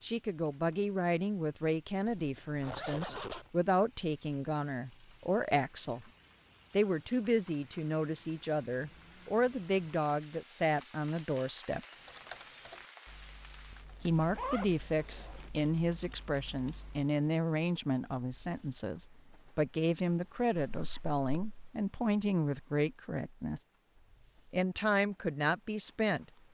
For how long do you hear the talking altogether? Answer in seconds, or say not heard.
23 s.